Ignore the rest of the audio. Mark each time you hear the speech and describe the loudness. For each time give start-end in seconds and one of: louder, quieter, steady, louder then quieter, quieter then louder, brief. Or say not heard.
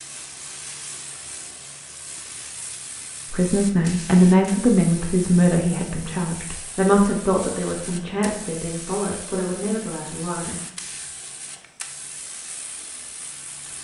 3.3-10.6 quieter.